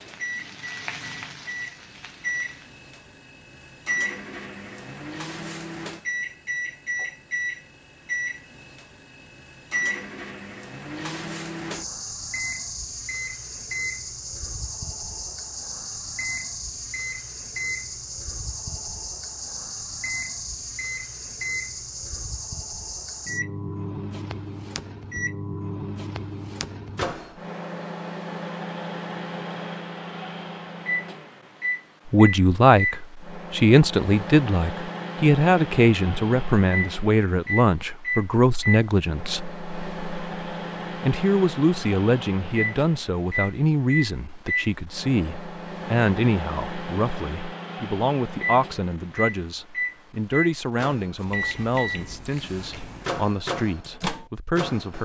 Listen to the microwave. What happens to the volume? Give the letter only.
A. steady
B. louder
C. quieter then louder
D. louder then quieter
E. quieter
A.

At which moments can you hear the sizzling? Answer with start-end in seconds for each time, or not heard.
0.0-2.9.